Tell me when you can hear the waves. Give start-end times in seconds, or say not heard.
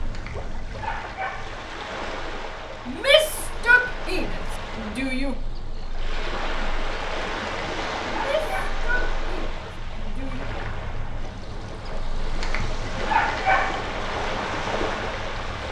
0.0-15.6.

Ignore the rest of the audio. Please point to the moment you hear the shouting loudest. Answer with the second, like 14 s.
3 s.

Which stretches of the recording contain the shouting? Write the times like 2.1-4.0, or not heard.
2.9-5.3, 8.1-10.4.